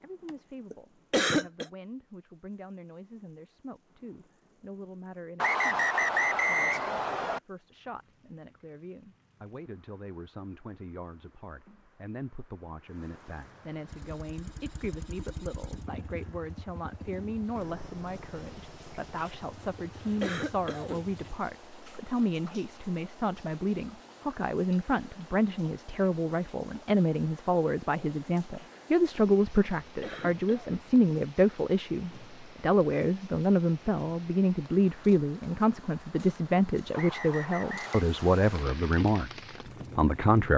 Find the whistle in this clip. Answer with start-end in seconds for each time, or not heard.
5.3-7.4, 36.9-38.0.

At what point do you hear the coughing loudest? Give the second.
1 s.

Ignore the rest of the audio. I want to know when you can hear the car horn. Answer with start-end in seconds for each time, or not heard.
not heard.